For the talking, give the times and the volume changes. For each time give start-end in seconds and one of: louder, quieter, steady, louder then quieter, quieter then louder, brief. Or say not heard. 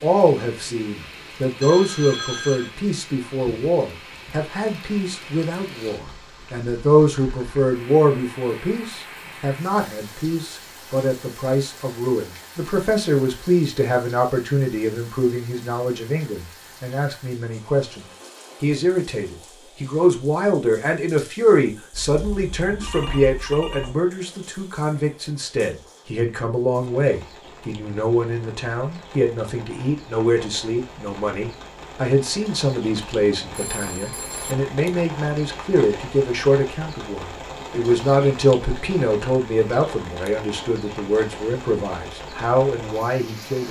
0.0-43.6 steady.